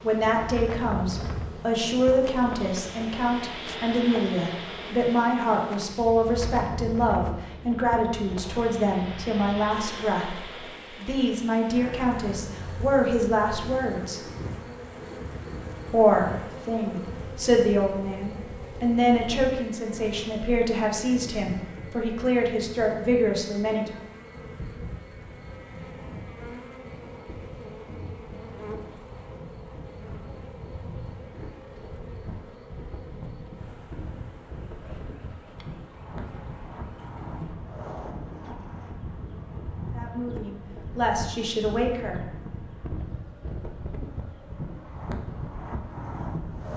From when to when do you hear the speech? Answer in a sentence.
The speech can be heard from 0.0 to 14.2 s, from 15.9 to 23.9 s and from 39.9 to 42.3 s.